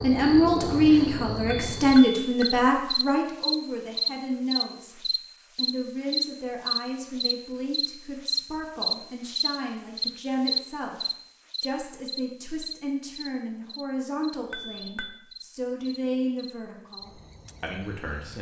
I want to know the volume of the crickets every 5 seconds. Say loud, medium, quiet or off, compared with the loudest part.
loud, loud, loud, quiet.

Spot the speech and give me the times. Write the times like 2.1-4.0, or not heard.
0.0-18.3.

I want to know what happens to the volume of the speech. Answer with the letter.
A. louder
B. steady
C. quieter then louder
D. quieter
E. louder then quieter
D.